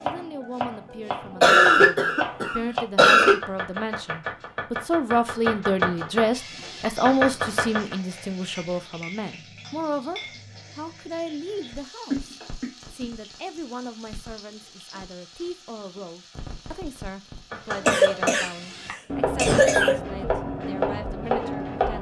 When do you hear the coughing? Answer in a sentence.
The coughing can be heard from 1.4 to 3.4 s, from 12.1 to 13.1 s, from 17.7 to 18.5 s and from 19.4 to 19.9 s.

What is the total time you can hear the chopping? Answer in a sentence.
The chopping can be heard for 12 seconds in total.